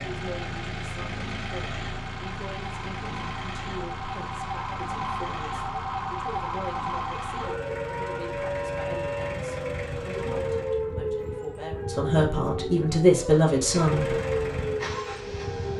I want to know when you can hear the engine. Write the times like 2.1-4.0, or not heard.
0.0-10.8, 13.6-15.7.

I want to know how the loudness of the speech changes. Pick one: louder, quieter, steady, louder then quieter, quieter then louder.
louder.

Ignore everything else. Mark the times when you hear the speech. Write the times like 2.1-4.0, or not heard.
0.0-14.2.